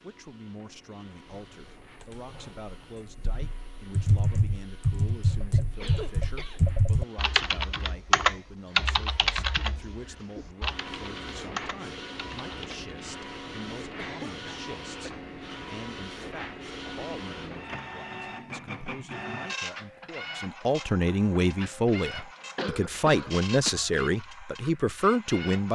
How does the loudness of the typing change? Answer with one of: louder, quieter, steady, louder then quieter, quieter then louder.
louder then quieter.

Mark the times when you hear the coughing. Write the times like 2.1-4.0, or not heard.
5.3-6.7, 13.9-15.2, 22.6-23.9.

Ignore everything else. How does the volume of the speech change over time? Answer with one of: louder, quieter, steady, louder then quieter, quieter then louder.
louder.